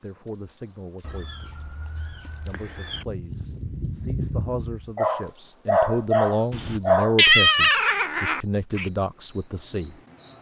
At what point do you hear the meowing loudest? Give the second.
7 s.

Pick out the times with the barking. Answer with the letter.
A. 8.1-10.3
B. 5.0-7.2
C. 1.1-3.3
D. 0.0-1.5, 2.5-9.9
B.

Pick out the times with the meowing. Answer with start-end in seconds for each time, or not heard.
1.0-3.0, 6.5-8.9.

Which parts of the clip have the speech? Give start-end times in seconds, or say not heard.
0.0-1.5, 2.5-9.9.